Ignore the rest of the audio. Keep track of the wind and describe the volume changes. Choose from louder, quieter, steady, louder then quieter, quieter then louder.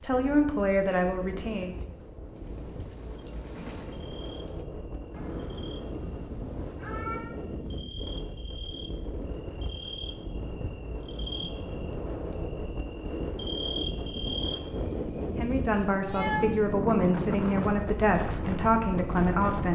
louder.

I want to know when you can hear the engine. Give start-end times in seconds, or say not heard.
2.4-4.7.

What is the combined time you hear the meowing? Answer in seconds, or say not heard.
3 s.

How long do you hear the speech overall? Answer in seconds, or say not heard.
6 s.